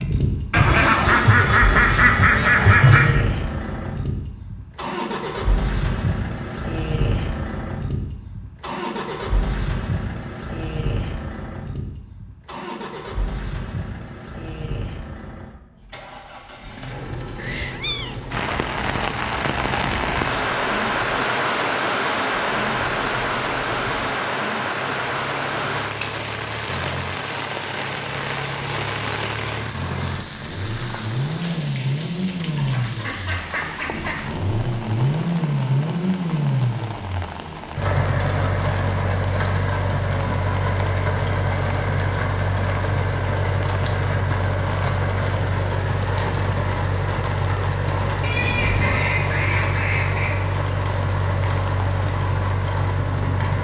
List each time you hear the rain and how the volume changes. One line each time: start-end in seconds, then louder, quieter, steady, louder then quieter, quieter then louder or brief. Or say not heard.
18.3-53.6 quieter.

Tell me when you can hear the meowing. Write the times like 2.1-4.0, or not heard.
17.4-19.1, 48.4-49.1.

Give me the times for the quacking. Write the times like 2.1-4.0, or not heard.
0.5-3.2, 32.5-34.2, 48.2-50.4.